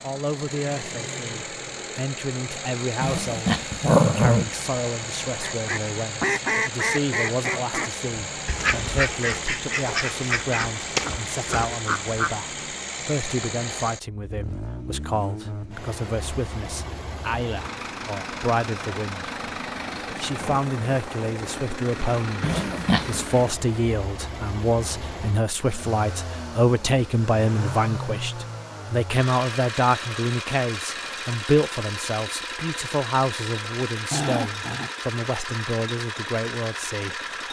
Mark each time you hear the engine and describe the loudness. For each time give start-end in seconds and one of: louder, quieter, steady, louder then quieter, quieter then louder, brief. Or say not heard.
0.0-37.4 steady.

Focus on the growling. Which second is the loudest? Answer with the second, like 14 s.
4 s.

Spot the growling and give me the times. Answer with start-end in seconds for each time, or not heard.
3.0-4.5, 22.4-23.2, 34.1-34.9.